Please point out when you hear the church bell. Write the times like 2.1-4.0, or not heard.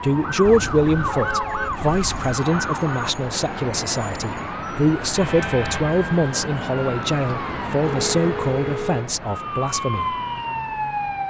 not heard.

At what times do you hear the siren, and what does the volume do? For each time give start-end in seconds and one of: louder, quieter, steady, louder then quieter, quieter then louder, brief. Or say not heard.
0.0-11.2 steady.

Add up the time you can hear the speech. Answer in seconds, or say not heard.
10 s.